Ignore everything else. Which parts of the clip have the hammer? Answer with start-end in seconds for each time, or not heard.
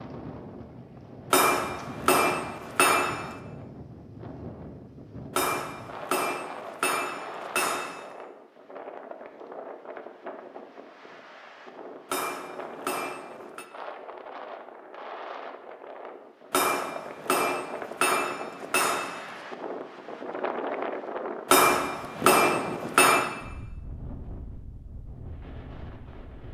1.3-3.4, 5.3-8.1, 12.1-13.7, 16.5-19.4, 21.4-23.3.